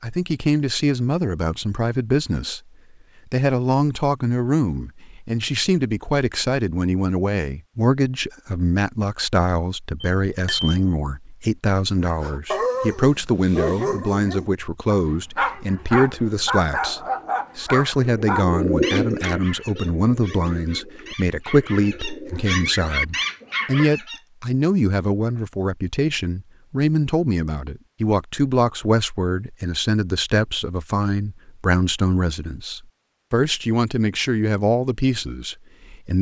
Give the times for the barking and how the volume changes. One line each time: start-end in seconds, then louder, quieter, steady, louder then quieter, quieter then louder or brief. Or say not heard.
12.0-24.2 quieter then louder.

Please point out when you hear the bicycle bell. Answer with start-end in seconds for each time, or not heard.
10.0-10.8.